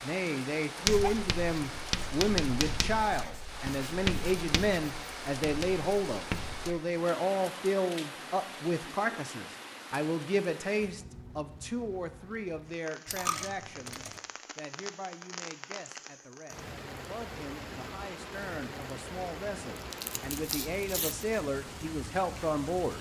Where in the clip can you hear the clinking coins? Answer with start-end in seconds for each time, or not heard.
13.1-14.2.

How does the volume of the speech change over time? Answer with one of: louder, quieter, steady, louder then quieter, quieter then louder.
quieter then louder.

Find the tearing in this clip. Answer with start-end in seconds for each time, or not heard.
19.8-21.2.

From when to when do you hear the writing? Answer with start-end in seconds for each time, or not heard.
0.8-6.8.